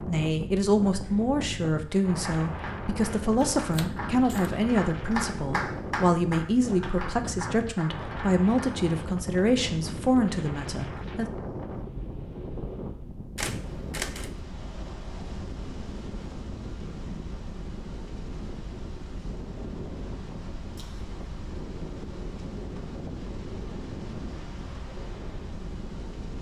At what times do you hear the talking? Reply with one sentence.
You can hear the talking from 0.1 to 11.3 s.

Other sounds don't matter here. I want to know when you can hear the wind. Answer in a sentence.
The wind can be heard from 0.0 to 26.3 s.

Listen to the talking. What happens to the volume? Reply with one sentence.
The loudness of the talking stays about the same.